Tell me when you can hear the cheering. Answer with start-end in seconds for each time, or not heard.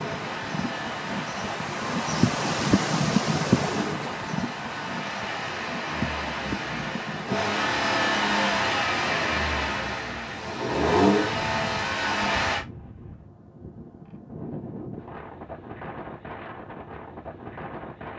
not heard.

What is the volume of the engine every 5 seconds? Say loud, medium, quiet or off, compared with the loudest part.
medium, loud, loud, off.